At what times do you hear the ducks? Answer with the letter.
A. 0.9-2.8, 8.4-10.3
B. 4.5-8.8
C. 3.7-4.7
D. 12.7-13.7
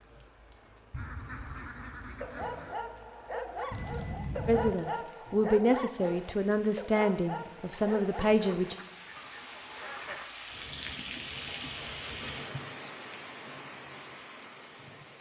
A.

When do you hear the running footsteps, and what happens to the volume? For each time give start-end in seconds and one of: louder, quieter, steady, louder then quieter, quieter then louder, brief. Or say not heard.
not heard.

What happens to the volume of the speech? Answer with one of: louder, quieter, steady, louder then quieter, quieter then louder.
steady.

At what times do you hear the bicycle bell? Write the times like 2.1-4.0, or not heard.
3.7-4.7.